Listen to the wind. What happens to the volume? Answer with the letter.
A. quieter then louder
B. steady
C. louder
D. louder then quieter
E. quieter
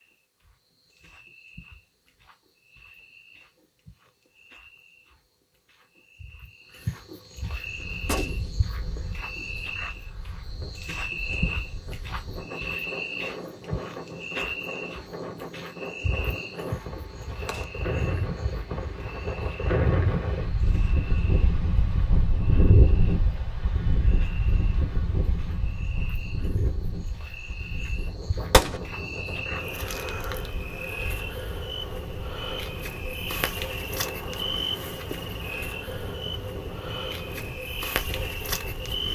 D.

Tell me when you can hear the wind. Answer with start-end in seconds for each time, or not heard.
7.6-39.1.